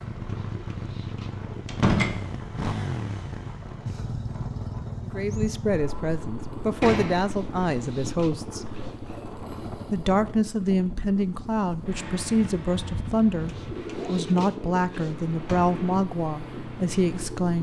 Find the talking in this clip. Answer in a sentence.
You can hear the talking from 5.0 to 8.7 s and from 9.9 to 17.5 s.